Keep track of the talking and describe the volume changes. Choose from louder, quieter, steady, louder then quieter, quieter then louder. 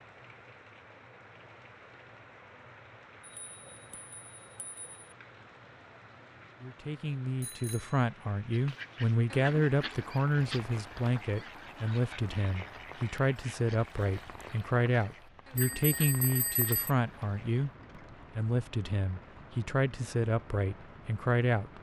steady.